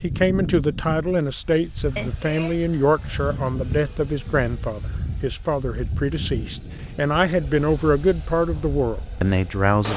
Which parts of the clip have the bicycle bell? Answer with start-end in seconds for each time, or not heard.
1.9-2.6.